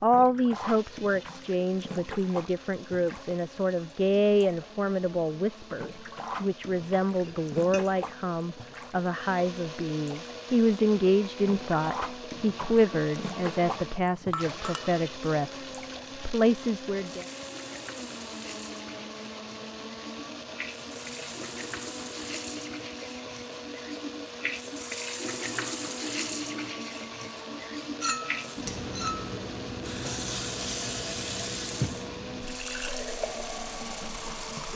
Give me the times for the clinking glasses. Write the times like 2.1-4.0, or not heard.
7.2-7.9, 14.3-15.0, 28.0-29.4.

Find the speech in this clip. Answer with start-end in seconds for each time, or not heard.
0.0-17.2.